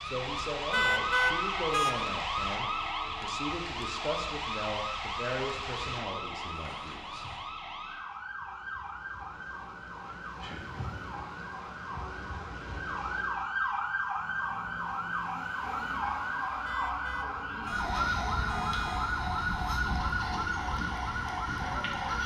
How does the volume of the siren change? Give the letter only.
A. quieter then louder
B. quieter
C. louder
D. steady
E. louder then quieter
A.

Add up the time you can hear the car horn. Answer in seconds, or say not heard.
4 s.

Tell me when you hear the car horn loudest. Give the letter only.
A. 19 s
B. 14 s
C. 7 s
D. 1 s
D.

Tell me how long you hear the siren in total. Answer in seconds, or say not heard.
22 s.